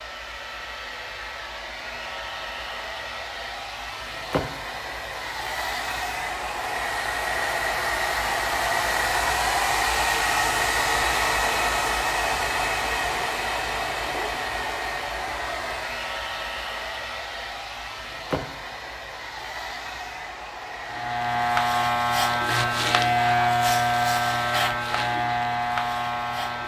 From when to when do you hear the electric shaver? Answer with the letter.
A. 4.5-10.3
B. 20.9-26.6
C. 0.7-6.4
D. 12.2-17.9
B.